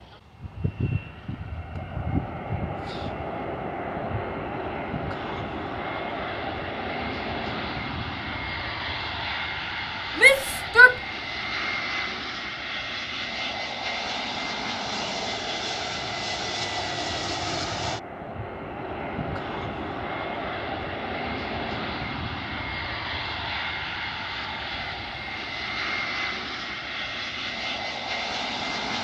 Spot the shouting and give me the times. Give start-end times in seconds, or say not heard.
10.2-10.9.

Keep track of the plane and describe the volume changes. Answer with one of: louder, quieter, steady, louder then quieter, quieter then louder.
steady.